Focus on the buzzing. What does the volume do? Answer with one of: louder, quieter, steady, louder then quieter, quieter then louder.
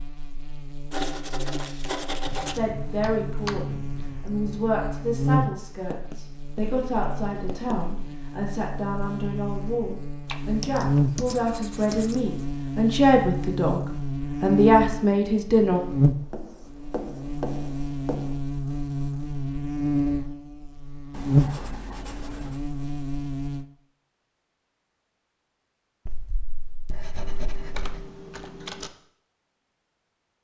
louder.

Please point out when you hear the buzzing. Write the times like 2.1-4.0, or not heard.
0.0-23.6.